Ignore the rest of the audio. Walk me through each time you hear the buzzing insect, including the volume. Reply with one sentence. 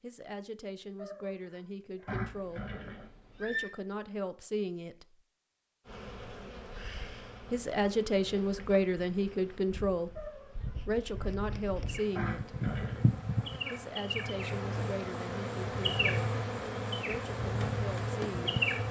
You can hear the buzzing insect from 5.8 to 18.8 s, getting louder.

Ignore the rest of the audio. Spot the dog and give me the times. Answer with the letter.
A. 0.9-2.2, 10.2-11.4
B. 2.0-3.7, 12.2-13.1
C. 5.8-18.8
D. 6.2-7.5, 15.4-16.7
A.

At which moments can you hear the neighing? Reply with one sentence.
The neighing can be heard from 2.0 to 3.7 s and from 12.2 to 13.1 s.